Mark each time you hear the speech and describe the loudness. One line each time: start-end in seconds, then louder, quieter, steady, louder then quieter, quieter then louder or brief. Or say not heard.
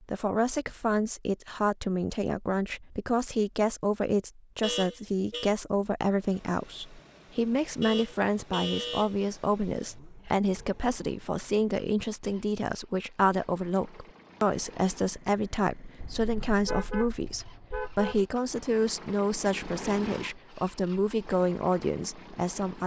0.1-22.8 steady.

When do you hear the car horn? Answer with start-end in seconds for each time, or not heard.
4.6-5.5, 7.8-9.2, 15.9-18.2.